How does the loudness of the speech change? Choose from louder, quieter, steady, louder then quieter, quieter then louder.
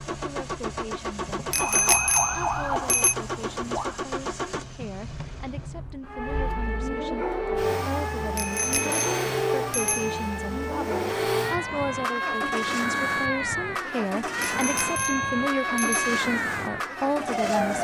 louder.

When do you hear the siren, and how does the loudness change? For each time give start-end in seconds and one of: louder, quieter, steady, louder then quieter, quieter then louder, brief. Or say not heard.
1.5-4.0 brief
6.0-17.8 steady.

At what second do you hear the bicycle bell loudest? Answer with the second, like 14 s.
2 s.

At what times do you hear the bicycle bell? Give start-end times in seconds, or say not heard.
1.5-3.1, 8.3-10.3, 14.4-16.1.